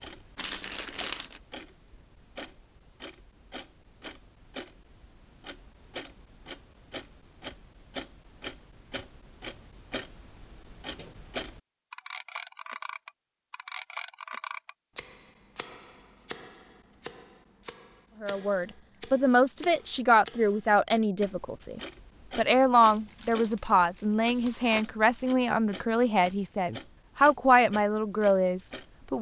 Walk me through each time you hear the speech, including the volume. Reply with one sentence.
The speech can be heard from 18.2 to 29.1 s, at a steady volume.